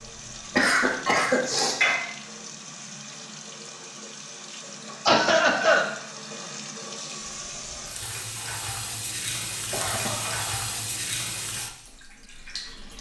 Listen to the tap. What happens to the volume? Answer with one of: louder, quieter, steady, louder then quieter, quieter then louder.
louder.